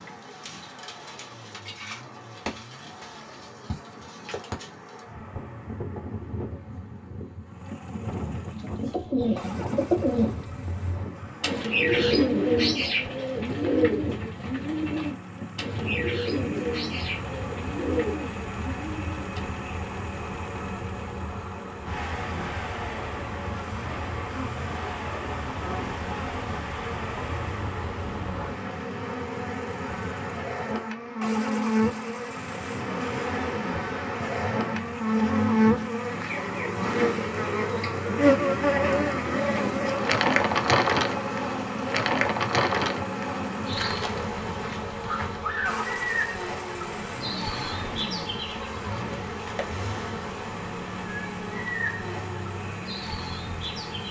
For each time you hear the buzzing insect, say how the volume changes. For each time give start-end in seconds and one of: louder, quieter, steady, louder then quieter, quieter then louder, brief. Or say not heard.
0.0-54.0 louder then quieter.